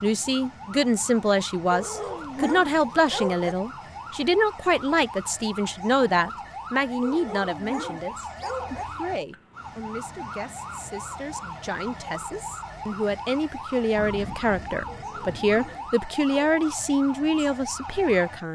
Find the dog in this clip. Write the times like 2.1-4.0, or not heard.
1.7-3.5, 7.0-8.8, 14.8-16.7.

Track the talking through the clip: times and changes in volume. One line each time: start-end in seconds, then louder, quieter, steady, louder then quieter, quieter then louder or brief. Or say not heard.
0.0-18.5 quieter then louder.